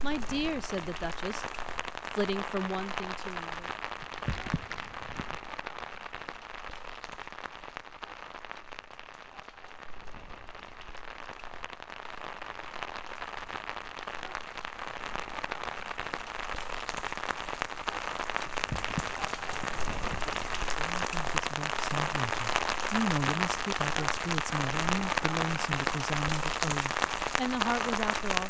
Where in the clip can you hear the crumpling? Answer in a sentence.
The crumpling can be heard from 4.0 to 5.4 s and from 18.4 to 20.3 s.